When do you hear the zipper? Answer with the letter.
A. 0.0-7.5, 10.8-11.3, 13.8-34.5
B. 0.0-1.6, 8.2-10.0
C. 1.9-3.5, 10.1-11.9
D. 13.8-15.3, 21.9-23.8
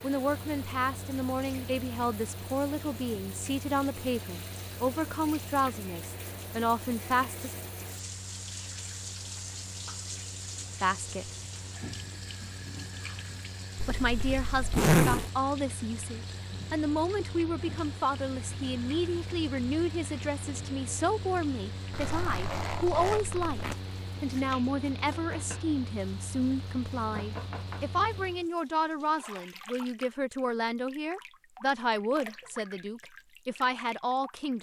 D.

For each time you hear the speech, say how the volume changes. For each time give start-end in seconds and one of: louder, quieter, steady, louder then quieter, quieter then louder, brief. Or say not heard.
0.0-7.5 steady
10.8-11.3 brief
13.8-34.5 steady.